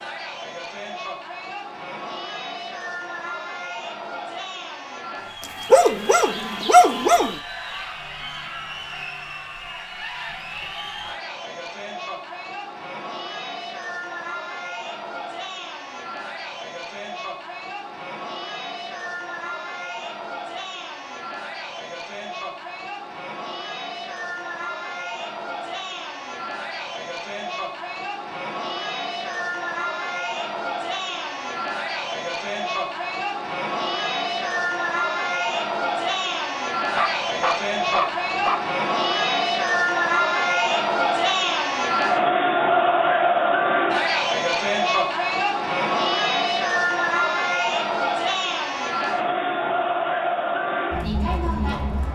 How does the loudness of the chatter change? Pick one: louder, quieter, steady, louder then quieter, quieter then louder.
louder.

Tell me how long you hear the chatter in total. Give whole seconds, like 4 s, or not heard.
52 s.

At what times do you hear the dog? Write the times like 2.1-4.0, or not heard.
5.4-7.4, 37.0-38.7.